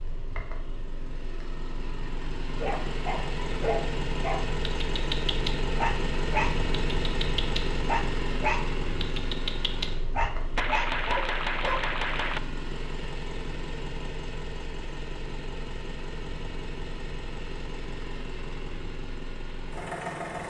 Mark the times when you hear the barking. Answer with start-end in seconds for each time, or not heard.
2.6-11.8.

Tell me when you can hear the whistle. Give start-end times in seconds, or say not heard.
not heard.